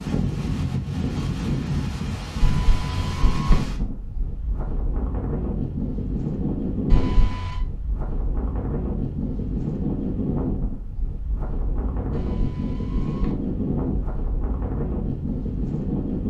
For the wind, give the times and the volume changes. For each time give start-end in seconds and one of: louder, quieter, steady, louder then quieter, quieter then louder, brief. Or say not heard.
0.0-16.2 steady.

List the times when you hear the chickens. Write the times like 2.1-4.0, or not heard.
not heard.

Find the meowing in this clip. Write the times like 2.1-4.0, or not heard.
2.4-3.6, 6.9-7.6, 12.1-13.3.